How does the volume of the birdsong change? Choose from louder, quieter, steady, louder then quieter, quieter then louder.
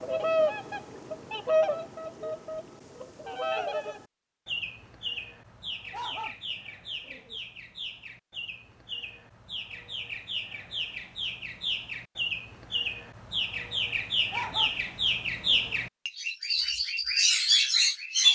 quieter then louder.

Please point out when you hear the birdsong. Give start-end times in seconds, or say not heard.
0.0-18.2.